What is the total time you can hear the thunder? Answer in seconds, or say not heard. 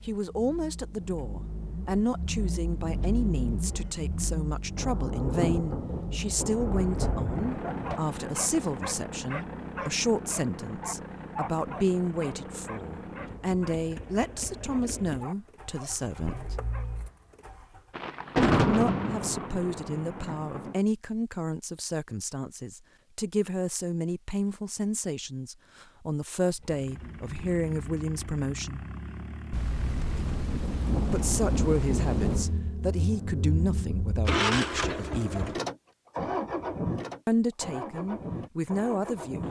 9 s.